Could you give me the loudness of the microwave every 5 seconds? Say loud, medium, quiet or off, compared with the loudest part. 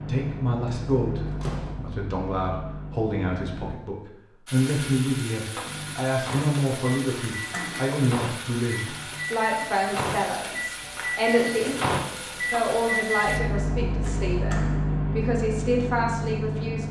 medium, medium, loud, loud.